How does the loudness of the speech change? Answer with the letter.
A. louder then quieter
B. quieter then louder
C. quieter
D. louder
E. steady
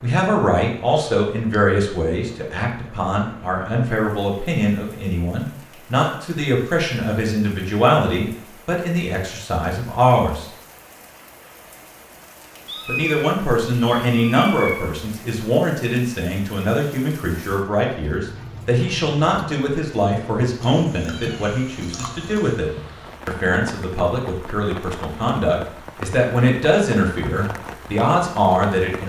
E.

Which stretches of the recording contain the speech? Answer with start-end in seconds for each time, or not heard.
0.0-10.4, 12.8-29.0.